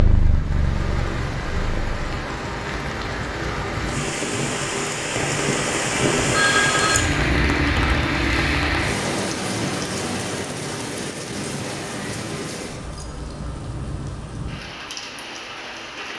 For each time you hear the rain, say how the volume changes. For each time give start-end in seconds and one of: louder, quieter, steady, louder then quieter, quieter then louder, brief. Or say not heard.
0.0-16.1 louder then quieter.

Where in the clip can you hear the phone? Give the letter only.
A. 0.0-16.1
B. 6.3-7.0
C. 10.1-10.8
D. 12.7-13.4
B.